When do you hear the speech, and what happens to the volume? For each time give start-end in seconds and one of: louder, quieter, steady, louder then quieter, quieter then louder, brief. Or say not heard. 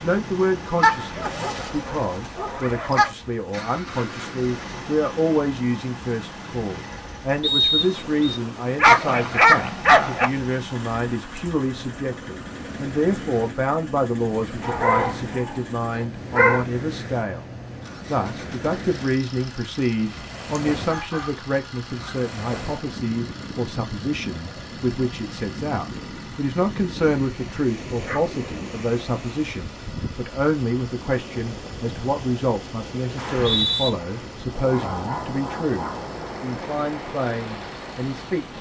0.0-38.5 steady.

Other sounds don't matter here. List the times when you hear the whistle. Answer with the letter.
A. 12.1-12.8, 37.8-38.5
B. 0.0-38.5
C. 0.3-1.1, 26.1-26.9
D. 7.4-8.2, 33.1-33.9
D.